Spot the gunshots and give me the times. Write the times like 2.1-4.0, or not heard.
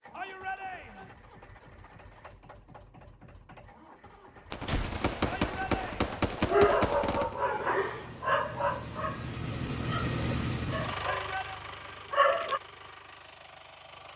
4.5-7.3.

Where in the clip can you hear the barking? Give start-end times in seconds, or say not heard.
6.5-12.6.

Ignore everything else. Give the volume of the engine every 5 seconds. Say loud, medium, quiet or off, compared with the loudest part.
quiet, loud, loud.